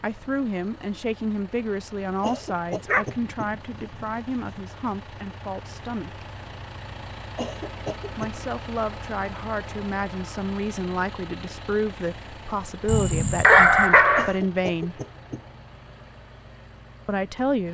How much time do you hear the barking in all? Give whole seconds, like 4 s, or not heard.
3 s.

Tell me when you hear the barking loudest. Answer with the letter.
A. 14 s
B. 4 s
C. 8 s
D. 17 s
A.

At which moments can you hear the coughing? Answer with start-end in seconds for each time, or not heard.
2.2-3.5, 7.3-8.3, 14.2-15.4.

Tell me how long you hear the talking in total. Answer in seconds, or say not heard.
14 s.